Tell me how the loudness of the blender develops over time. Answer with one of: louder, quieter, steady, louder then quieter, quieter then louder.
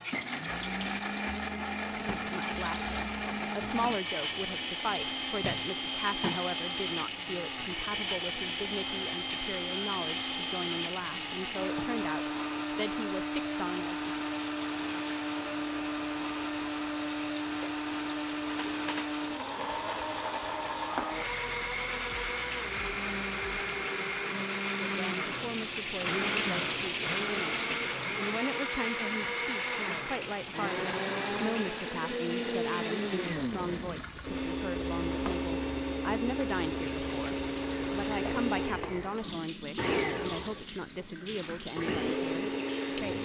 steady.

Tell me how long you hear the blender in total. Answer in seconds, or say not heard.
43 s.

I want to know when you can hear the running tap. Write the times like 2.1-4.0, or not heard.
0.0-43.2.